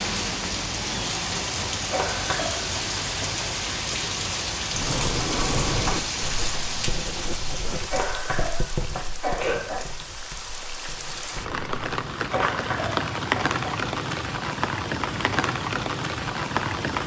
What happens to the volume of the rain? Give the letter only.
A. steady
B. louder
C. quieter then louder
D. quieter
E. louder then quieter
C.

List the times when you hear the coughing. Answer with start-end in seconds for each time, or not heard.
1.9-2.7, 7.9-9.8, 12.3-13.5.